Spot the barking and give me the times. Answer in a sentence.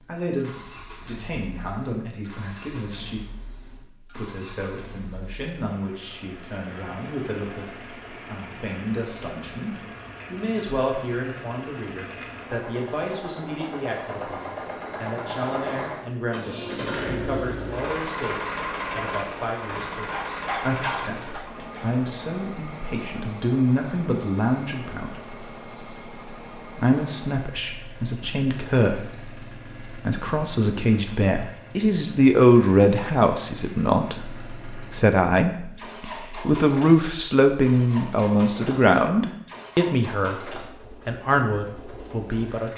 The barking can be heard from 20.1 to 22.0 s.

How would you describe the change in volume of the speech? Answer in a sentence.
The volume of the speech goes up.